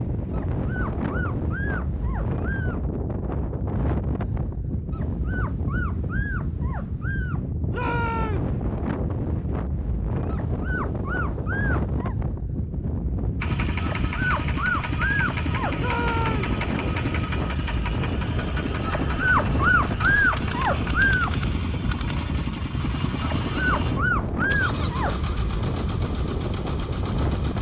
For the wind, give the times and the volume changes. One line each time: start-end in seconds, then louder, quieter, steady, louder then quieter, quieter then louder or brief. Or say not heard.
0.0-27.5 steady.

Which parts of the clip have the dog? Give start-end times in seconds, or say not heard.
0.3-2.9, 4.9-7.5, 10.2-12.2, 13.8-15.8, 18.8-21.4, 23.2-25.3.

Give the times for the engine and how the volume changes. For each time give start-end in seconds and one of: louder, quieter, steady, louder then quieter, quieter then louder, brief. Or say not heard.
13.4-27.5 steady.